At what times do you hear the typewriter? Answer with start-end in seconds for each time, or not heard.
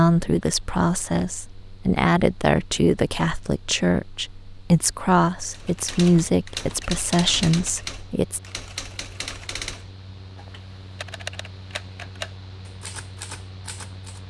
5.5-14.2.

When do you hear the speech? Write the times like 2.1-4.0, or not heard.
0.0-8.4.